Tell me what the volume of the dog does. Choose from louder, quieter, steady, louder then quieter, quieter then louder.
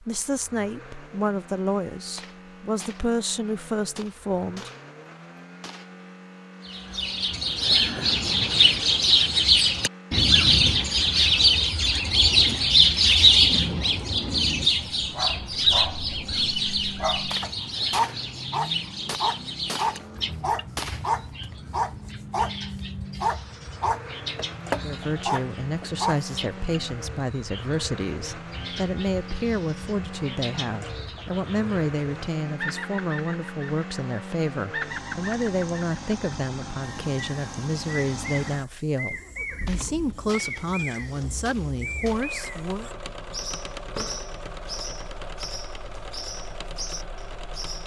louder.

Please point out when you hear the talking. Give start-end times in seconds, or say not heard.
0.0-4.7, 24.8-42.9.